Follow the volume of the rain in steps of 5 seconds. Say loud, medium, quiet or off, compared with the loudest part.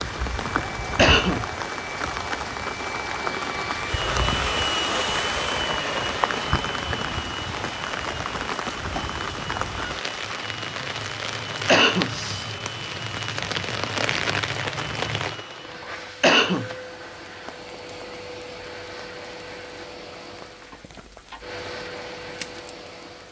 loud, loud, loud, medium, quiet.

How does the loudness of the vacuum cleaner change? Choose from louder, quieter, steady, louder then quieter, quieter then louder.
quieter.